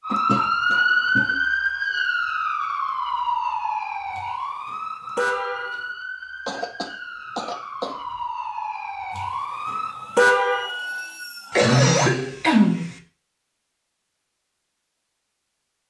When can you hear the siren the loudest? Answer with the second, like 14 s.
1 s.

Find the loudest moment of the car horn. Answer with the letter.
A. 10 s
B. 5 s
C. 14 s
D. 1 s
A.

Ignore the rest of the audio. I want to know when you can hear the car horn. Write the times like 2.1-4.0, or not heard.
4.1-5.8, 9.1-10.7.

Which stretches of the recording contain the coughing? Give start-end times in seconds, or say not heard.
0.1-1.4, 6.5-8.2, 11.5-12.9.